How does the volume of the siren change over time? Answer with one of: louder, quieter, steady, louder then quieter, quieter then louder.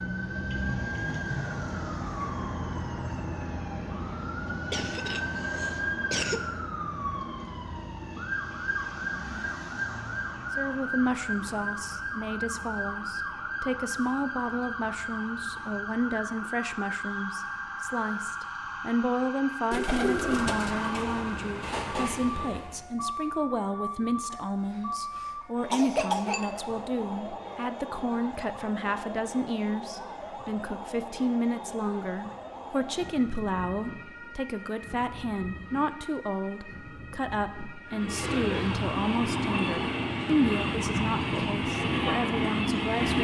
quieter.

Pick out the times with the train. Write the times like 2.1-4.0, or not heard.
19.9-22.9, 37.9-43.1.